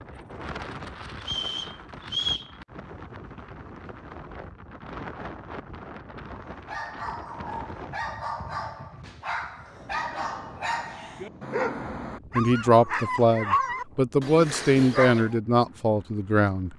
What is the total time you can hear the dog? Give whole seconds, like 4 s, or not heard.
9 s.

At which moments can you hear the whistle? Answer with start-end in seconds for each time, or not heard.
1.2-2.5.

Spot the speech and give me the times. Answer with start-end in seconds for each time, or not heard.
12.3-16.7.